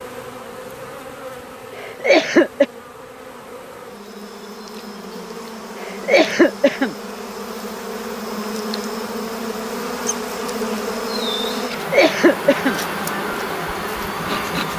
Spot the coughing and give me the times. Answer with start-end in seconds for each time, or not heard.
1.8-2.6, 5.8-7.0, 11.7-12.8.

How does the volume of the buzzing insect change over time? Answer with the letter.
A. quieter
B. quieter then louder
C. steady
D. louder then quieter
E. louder
E.